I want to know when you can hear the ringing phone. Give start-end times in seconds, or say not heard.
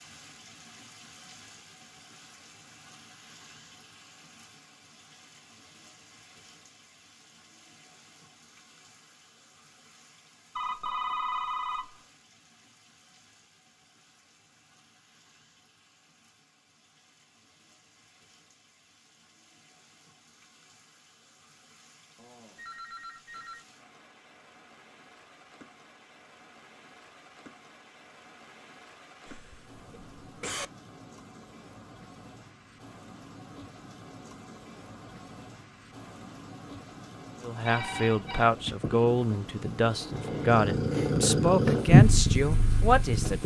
10.6-11.9, 22.1-23.6, 37.6-38.5.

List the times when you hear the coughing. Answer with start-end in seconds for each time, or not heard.
29.2-30.7.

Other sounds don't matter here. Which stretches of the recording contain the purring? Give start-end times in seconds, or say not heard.
37.9-43.4.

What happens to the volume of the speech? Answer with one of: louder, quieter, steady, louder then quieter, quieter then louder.
steady.